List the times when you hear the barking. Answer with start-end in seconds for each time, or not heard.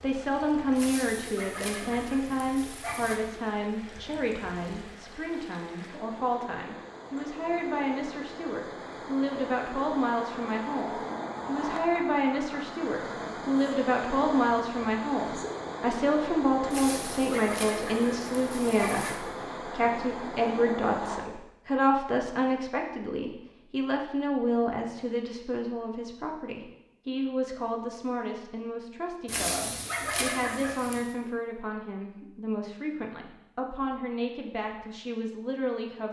0.8-3.2, 16.7-19.2, 29.2-31.1.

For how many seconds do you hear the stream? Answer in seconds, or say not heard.
21 s.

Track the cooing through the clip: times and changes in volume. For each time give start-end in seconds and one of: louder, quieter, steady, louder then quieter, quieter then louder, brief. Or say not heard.
not heard.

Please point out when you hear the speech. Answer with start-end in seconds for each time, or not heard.
0.0-36.0.